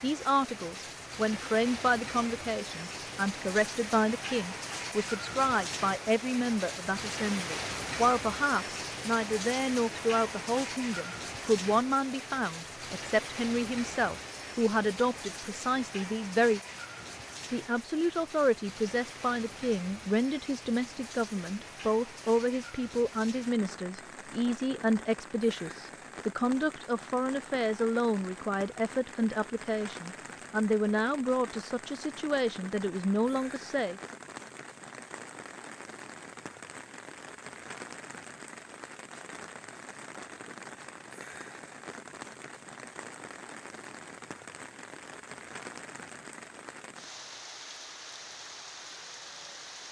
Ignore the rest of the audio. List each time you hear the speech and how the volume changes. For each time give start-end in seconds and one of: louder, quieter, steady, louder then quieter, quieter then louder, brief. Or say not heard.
0.0-16.6 steady
17.5-34.0 steady.